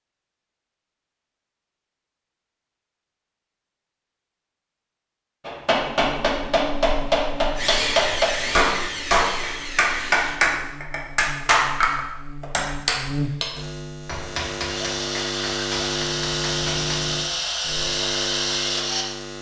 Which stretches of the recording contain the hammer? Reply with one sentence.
The hammer can be heard from 5.5 to 17.0 s.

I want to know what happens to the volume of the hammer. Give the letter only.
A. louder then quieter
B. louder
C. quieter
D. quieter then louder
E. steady
C.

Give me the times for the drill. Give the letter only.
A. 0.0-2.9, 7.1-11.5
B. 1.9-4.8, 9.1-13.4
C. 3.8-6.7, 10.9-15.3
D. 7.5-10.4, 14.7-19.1
D.